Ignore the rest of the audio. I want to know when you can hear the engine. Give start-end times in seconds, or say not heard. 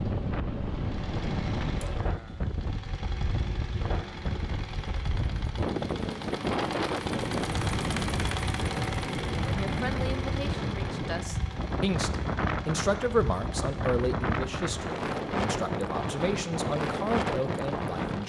0.1-18.2.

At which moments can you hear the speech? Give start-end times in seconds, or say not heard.
9.4-18.2.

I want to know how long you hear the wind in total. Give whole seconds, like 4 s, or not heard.
18 s.